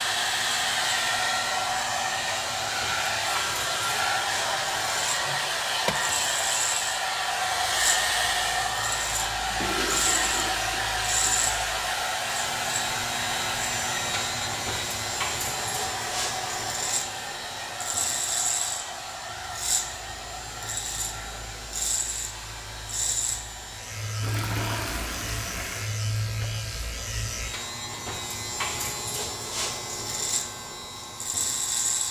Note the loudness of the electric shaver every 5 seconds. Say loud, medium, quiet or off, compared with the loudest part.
medium, loud, loud, loud, loud, loud, loud.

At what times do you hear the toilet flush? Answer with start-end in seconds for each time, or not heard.
9.6-11.6, 24.2-25.9.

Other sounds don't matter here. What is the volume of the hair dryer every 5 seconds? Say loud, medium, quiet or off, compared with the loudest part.
loud, loud, loud, medium, quiet, quiet, quiet.